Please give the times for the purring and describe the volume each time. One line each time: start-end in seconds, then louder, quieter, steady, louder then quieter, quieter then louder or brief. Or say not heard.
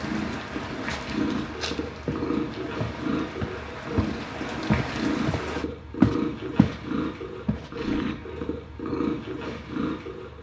0.0-10.3 steady.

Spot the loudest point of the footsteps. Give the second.
6 s.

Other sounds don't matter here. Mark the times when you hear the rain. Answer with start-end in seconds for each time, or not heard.
0.0-5.7.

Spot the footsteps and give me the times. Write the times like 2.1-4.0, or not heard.
0.7-6.8, 7.5-8.2.